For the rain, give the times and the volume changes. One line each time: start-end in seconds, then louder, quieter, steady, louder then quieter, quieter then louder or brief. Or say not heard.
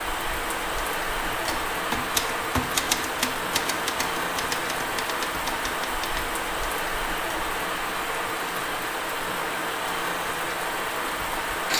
0.0-11.7 steady.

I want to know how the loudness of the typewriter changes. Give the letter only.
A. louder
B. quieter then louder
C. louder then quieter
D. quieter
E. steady
D.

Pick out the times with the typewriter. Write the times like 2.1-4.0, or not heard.
1.2-6.3.